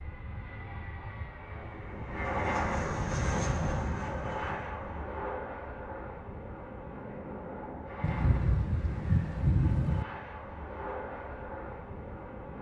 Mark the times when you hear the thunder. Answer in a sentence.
You can hear the thunder from 8.0 to 10.1 s.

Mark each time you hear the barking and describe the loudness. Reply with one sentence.
The barking can't be heard in this clip.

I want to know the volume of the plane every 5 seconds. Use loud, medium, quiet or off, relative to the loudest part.
loud, medium, medium.